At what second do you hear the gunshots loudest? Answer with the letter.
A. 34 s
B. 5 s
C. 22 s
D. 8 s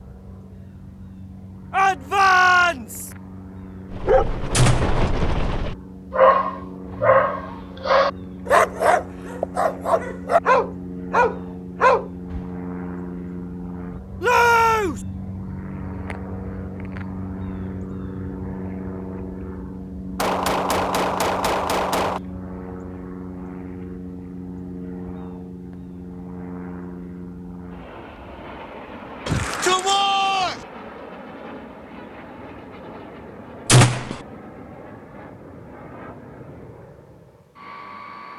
A.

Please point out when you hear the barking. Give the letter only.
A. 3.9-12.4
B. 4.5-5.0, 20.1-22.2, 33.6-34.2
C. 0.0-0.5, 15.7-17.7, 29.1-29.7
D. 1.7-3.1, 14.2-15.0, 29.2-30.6
A.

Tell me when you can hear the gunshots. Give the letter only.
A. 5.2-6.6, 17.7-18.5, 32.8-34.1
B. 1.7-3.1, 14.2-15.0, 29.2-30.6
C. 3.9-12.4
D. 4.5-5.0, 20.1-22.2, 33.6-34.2
D.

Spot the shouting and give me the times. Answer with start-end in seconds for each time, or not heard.
1.7-3.1, 14.2-15.0, 29.2-30.6.